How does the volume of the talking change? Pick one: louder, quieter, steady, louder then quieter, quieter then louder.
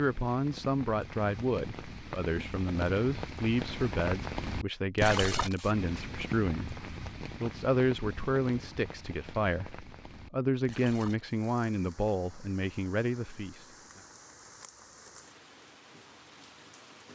steady.